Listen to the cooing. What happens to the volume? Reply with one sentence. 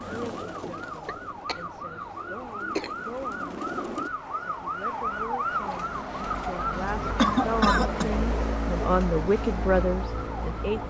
The loudness of the cooing goes down, then up.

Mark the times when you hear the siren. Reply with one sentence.
The siren can be heard from 0.0 to 10.8 s.